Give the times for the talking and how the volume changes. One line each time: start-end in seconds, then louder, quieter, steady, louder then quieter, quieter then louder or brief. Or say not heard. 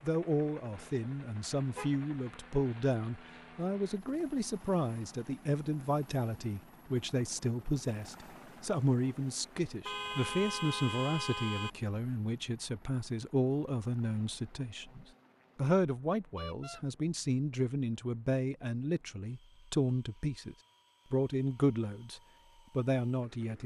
0.0-23.6 steady.